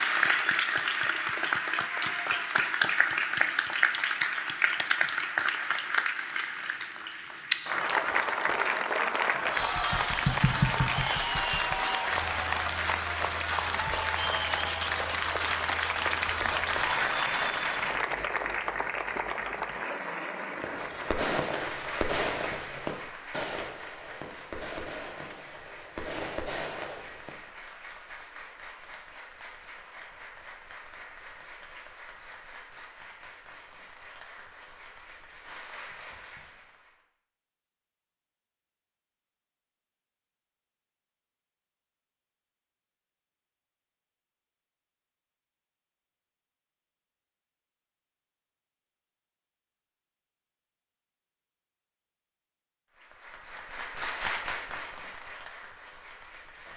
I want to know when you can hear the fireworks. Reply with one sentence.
The fireworks can be heard from 20.6 to 27.4 s.